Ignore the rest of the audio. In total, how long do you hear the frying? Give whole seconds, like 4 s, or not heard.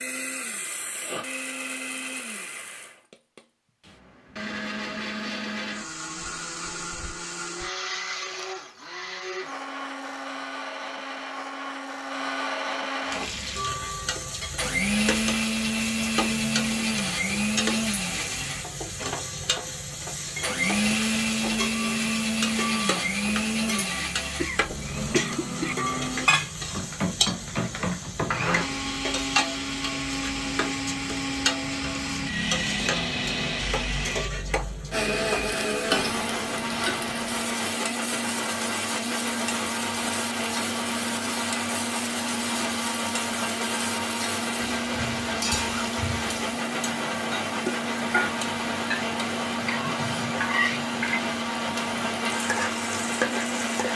41 s.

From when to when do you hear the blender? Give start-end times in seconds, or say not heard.
0.0-53.9.